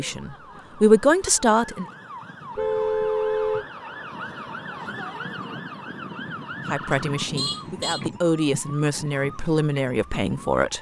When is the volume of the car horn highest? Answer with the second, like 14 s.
3 s.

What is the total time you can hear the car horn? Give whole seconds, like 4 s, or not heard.
2 s.